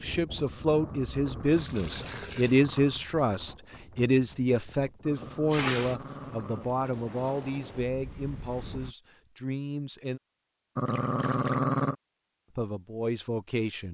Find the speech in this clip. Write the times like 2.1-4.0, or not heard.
0.0-10.2, 12.6-13.9.